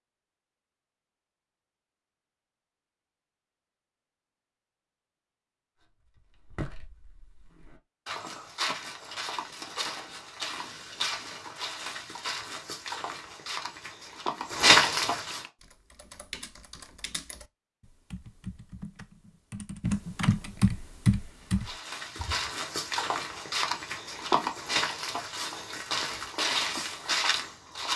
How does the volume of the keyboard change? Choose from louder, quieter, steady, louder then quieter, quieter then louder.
louder.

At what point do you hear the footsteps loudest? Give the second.
15 s.